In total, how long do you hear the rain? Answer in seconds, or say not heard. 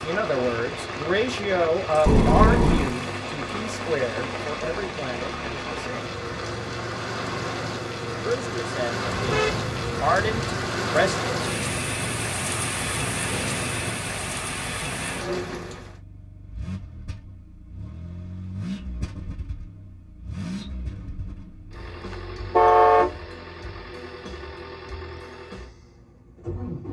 16 s.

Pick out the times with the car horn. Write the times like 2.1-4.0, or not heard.
2.0-3.0, 9.1-10.7, 22.5-23.1.